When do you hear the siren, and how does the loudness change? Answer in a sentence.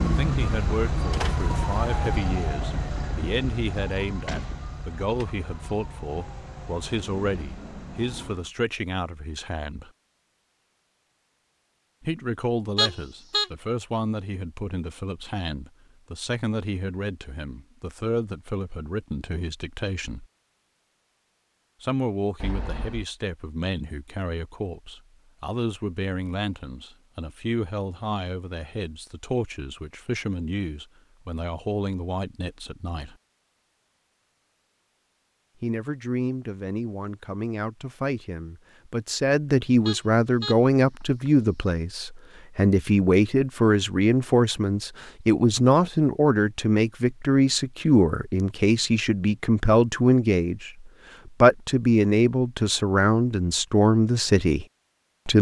The siren can be heard from 0.0 to 8.5 s, getting quieter.